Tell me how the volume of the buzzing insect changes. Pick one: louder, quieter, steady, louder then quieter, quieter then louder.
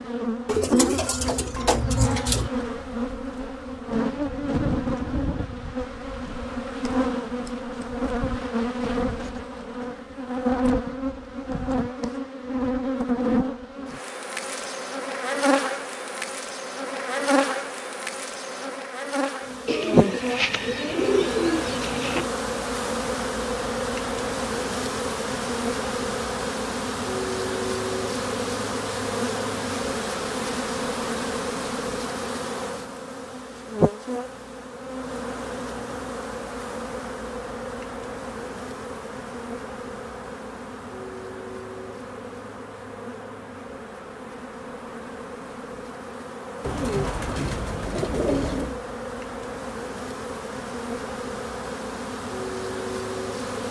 quieter.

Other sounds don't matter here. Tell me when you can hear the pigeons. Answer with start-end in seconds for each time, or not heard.
0.5-2.5, 19.6-22.3, 46.6-48.8.